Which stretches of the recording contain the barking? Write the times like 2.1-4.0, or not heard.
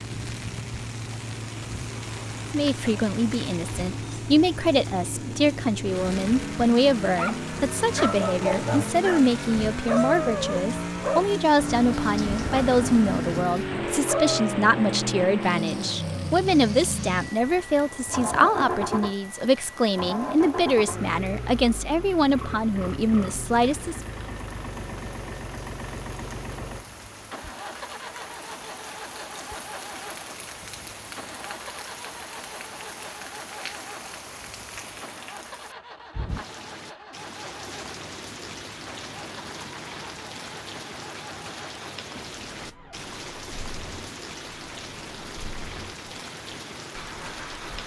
7.0-14.6.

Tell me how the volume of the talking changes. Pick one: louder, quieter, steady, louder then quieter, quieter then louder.
steady.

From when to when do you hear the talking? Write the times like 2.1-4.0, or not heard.
2.5-24.0.